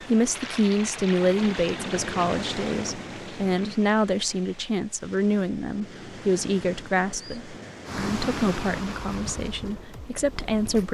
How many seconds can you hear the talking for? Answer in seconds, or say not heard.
11 s.